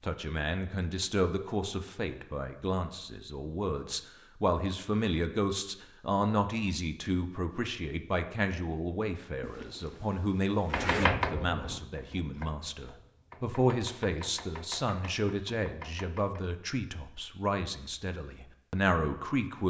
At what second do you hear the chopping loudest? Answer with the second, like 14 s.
11 s.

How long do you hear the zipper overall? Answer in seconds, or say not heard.
2 s.